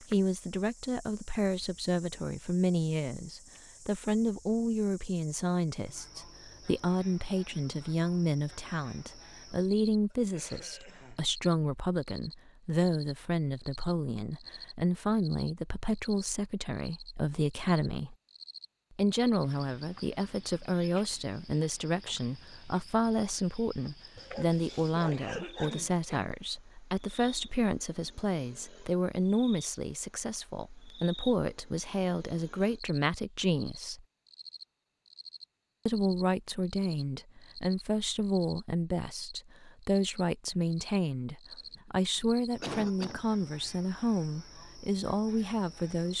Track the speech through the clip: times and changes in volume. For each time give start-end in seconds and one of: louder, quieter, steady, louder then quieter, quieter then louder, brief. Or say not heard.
0.0-18.1 steady
18.9-34.0 steady
35.9-46.1 steady.